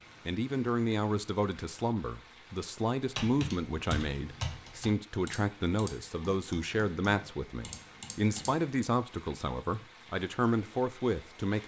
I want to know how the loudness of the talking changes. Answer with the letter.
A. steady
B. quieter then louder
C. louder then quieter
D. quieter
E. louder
A.